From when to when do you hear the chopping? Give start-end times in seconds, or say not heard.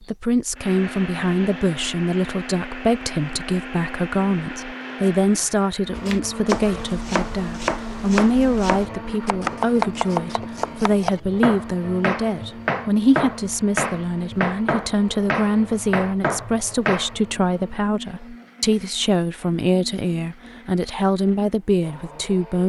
6.0-17.2.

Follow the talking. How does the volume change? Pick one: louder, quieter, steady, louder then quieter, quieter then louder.
steady.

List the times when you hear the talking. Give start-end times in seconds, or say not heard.
0.0-22.6.